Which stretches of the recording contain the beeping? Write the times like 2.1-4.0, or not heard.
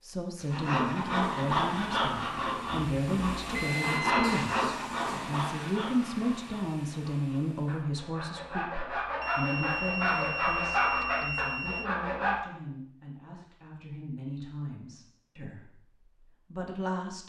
3.5-4.4, 9.2-11.9.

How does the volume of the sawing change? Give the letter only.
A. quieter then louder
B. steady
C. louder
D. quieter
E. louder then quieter
A.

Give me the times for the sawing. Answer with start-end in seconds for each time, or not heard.
0.5-12.3.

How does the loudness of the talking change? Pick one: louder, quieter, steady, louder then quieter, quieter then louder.
quieter.